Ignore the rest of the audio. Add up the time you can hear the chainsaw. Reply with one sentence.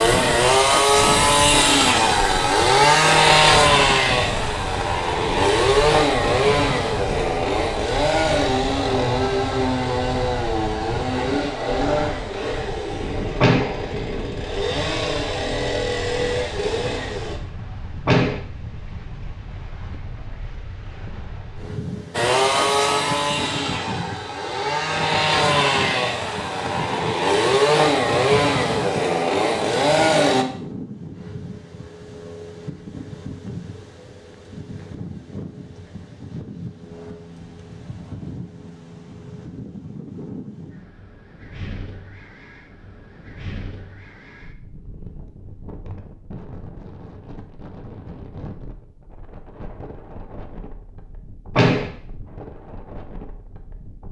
The chainsaw can be heard for 26 seconds in total.